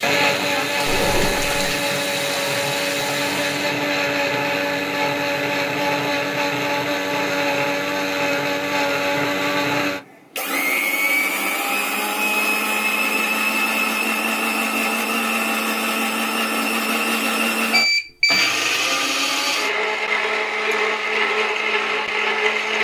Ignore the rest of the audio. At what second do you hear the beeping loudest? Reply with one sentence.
The loudest moment of the beeping is at 18 seconds.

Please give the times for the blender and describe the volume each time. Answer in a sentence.
You can hear the blender from 0.0 to 22.7 s, at a steady volume.